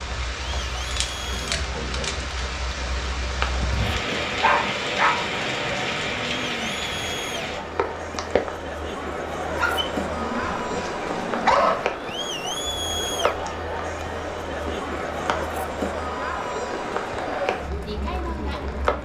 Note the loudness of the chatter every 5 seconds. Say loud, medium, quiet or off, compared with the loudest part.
medium, loud, loud, loud.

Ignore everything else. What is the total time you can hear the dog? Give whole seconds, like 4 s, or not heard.
4 s.